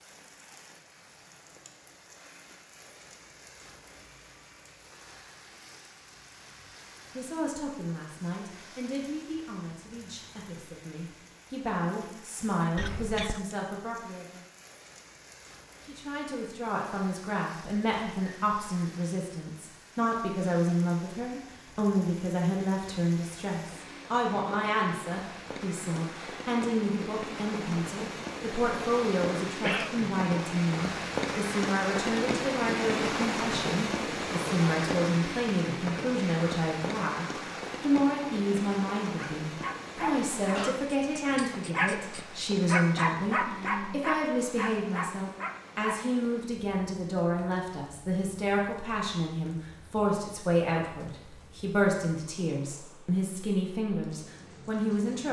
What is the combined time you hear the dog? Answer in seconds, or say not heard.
7 s.